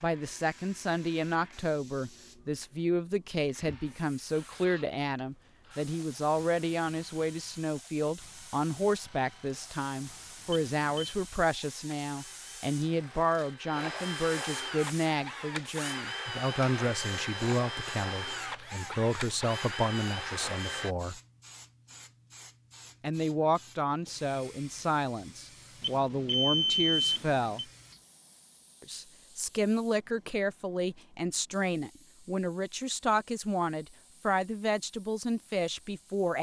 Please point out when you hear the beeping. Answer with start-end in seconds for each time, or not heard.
10.5-11.2, 25.8-27.6.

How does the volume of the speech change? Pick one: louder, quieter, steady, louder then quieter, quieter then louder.
steady.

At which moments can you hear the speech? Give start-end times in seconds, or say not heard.
0.0-21.2, 23.0-27.6, 28.8-36.3.